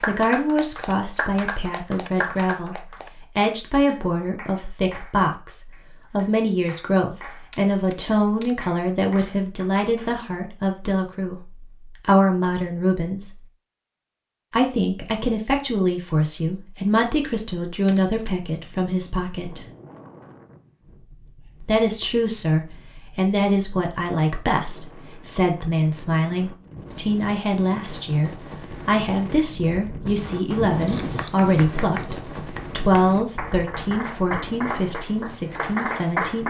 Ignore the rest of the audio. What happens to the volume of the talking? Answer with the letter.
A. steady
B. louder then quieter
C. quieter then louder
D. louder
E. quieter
A.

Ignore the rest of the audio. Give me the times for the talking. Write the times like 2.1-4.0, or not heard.
0.0-13.3, 14.5-19.6, 21.6-36.4.